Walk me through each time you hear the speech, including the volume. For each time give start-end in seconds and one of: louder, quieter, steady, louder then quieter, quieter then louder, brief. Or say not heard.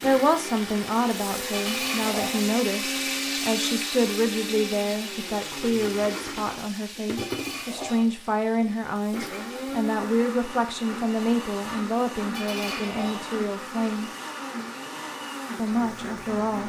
0.0-14.1 steady
15.6-16.6 brief.